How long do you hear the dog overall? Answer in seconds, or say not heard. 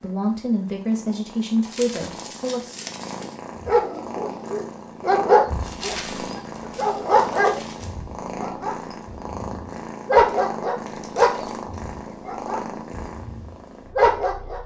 11 s.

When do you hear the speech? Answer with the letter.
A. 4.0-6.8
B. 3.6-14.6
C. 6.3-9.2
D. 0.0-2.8
D.